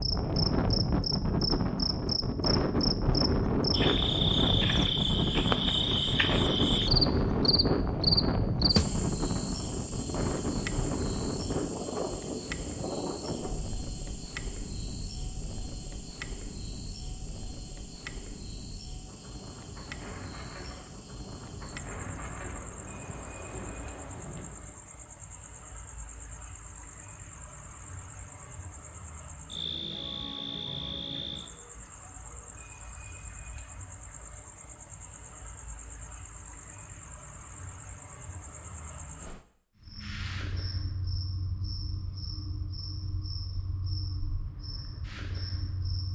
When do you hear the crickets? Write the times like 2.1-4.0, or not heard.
0.0-46.1.